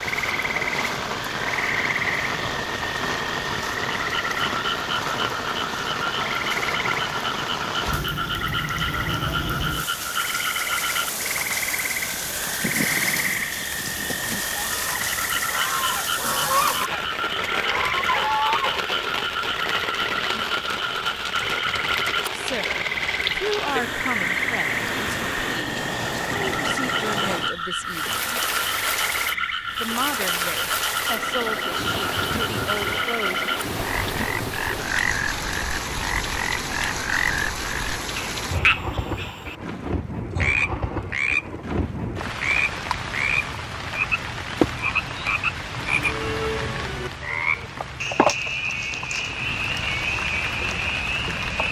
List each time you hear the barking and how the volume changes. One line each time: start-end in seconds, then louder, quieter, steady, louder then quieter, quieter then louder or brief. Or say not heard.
not heard.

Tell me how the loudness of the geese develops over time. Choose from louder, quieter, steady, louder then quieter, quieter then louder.
louder.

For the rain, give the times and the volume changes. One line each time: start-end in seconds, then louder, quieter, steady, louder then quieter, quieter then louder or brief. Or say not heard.
0.0-51.6 steady.